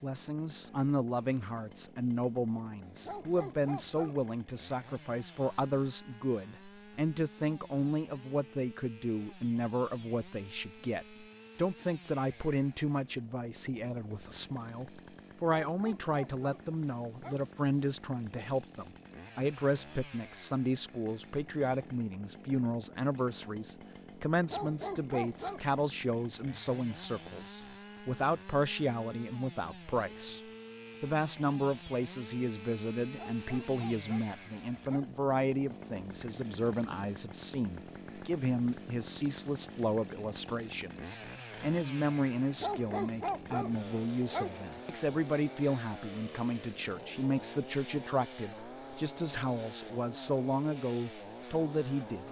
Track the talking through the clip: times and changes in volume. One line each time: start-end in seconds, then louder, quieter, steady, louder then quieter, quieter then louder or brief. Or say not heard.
0.0-30.4 steady
31.0-52.2 steady.